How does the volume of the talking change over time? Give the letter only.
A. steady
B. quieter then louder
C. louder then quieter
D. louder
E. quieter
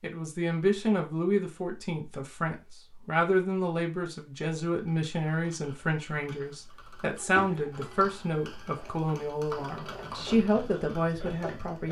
A.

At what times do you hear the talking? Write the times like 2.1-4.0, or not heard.
0.0-11.8.